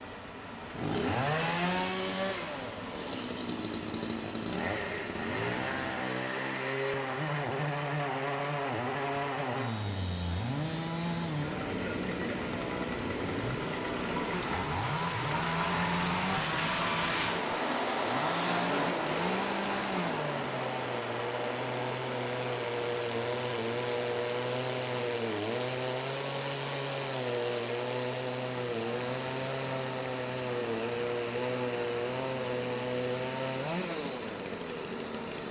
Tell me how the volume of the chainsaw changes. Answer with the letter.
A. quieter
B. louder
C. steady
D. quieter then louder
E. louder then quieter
C.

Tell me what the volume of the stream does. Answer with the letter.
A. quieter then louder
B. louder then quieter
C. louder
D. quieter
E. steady
B.